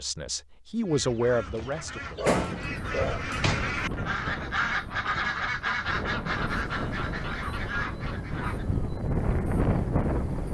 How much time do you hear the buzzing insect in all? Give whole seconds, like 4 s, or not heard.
not heard.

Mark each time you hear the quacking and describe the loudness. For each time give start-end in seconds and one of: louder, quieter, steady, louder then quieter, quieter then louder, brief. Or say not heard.
0.8-8.7 louder then quieter.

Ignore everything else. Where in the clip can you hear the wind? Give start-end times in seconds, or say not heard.
2.5-10.4.